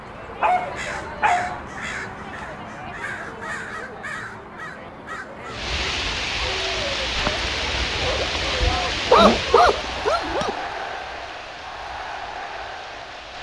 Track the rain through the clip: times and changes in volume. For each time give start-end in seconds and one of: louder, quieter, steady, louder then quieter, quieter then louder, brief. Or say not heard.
5.5-13.3 quieter.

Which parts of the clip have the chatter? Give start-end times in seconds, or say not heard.
0.0-13.3.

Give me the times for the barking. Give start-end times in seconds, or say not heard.
0.4-1.6, 9.1-10.5.